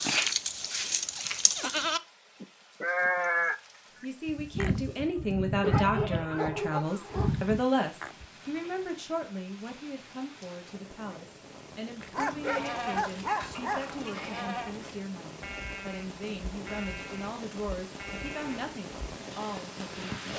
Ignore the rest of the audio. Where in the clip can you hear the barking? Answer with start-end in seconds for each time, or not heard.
5.6-7.4, 12.1-13.9.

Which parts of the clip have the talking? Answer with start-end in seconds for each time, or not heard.
4.0-20.1.